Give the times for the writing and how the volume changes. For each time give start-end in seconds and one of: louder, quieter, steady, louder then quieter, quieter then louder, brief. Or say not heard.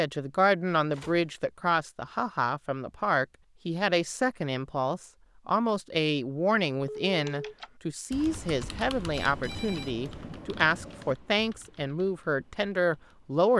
not heard.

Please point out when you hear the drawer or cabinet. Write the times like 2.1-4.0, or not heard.
not heard.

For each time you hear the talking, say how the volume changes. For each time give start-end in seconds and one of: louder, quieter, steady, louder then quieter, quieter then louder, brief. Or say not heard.
0.0-13.5 steady.